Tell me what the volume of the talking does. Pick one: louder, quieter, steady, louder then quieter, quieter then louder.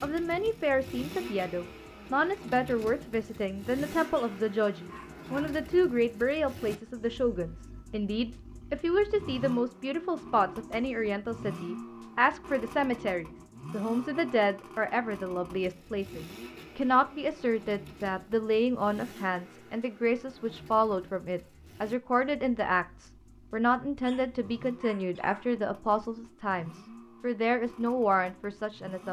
steady.